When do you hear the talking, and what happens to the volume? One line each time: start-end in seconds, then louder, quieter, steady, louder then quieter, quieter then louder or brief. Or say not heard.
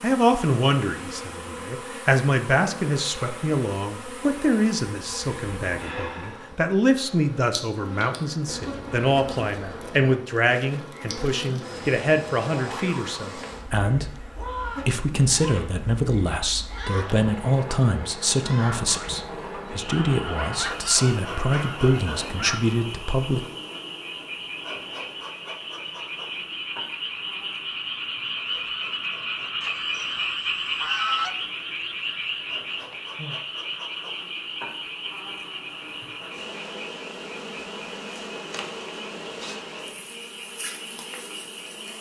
0.0-23.5 steady.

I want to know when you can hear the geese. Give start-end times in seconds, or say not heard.
8.4-10.3, 19.9-22.6, 29.6-31.4.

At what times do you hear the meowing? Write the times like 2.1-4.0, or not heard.
not heard.